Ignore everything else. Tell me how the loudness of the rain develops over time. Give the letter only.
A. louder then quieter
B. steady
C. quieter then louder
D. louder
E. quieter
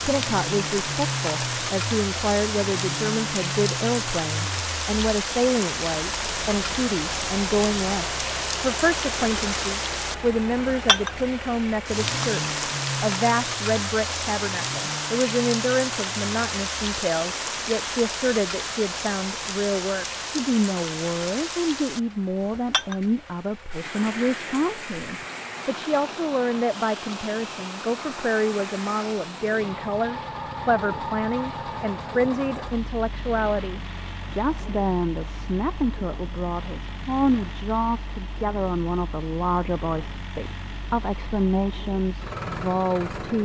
E.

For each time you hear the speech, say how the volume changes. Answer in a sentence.
You can hear the speech from 0.0 to 43.4 s, at a steady volume.